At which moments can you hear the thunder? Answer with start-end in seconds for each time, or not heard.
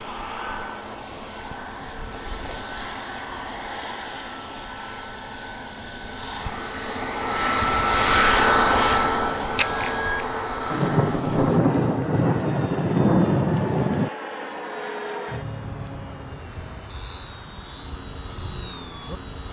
10.7-14.1.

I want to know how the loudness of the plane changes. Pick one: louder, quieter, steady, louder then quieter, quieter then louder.
louder then quieter.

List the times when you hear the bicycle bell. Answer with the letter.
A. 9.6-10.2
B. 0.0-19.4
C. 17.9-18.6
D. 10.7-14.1
A.